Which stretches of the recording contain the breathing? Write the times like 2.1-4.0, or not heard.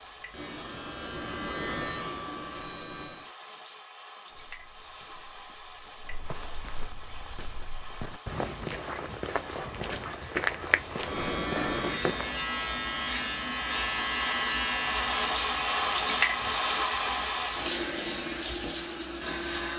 not heard.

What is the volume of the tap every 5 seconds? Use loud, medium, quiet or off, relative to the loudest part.
quiet, quiet, medium, loud.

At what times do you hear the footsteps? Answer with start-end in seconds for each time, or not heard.
4.3-12.3.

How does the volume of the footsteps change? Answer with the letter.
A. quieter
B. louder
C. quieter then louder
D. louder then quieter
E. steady
B.